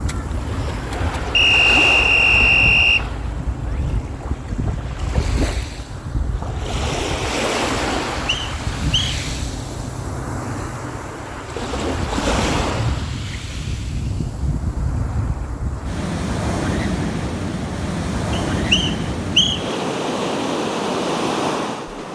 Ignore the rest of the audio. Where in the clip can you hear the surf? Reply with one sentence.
You can hear the surf from 0.0 to 22.1 s.